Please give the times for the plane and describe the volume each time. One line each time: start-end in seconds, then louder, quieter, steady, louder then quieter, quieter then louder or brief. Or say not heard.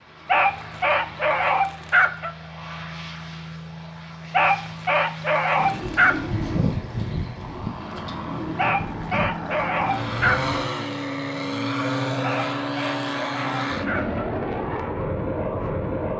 0.0-16.1 louder.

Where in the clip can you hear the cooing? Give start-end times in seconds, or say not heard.
5.5-10.6.